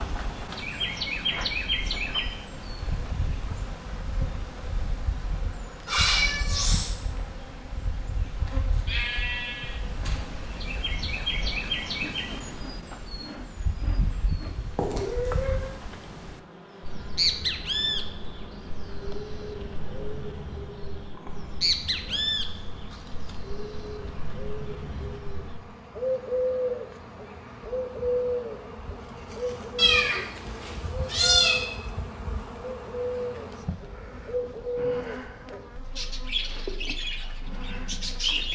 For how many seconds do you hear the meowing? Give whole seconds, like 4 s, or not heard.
4 s.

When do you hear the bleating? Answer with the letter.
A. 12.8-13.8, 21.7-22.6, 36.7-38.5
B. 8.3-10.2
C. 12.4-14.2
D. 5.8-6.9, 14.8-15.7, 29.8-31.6
B.